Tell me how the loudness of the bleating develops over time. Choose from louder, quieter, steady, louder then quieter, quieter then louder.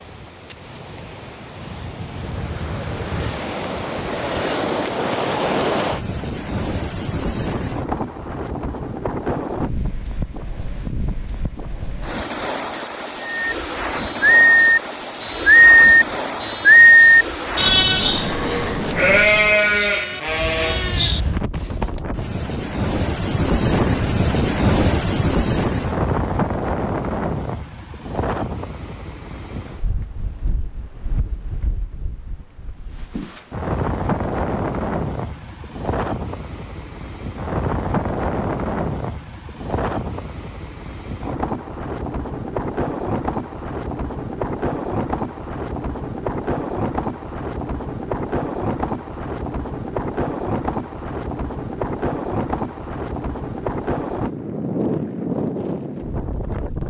quieter.